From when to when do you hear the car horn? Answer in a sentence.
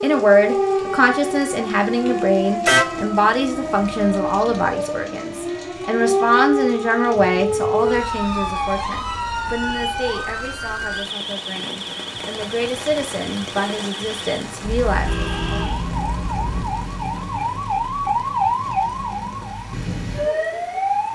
You can hear the car horn from 2.6 to 3.0 s and from 14.6 to 16.6 s.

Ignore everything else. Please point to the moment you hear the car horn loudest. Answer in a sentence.
The volume of the car horn peaks at 3 seconds.